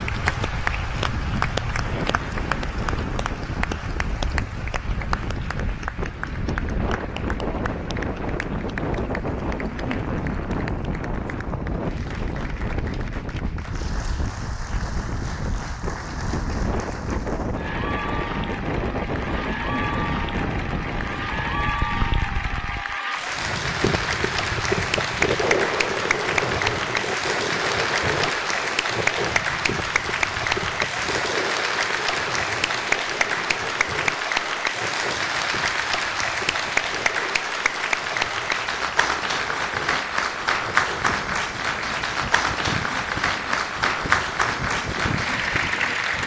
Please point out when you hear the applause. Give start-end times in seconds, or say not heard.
0.0-46.2.